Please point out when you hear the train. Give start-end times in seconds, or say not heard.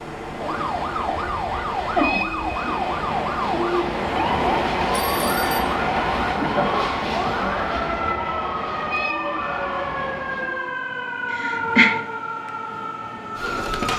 0.0-10.8.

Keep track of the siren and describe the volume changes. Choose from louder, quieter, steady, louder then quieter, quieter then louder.
steady.